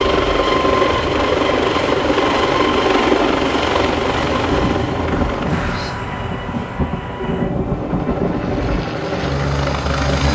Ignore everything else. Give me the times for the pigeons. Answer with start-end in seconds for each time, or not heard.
not heard.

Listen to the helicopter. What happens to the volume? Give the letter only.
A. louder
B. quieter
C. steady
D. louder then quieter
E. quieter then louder
E.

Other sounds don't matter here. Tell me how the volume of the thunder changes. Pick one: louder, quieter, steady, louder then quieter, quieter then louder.
quieter then louder.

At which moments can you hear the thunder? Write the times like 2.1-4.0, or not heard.
4.5-8.8.